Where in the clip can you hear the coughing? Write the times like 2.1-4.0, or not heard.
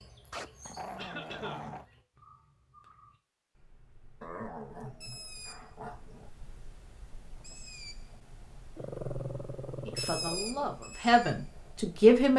0.9-1.7.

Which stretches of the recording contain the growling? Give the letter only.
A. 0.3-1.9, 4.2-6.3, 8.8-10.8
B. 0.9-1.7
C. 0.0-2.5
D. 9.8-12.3
A.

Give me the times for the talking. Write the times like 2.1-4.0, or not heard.
9.8-12.3.